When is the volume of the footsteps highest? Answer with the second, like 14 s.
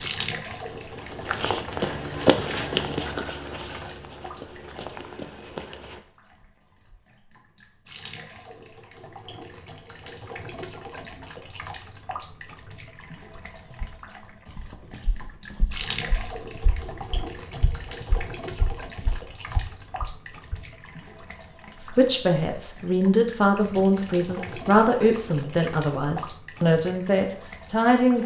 2 s.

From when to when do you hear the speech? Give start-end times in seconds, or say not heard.
21.8-28.2.